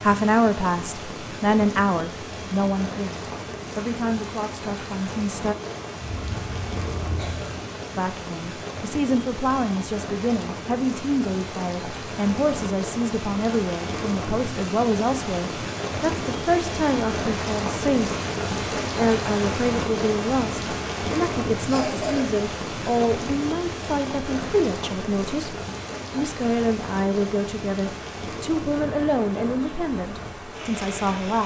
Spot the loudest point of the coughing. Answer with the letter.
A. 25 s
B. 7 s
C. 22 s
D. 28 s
C.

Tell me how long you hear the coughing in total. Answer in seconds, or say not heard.
2 s.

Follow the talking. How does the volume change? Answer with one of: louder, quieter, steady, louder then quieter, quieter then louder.
steady.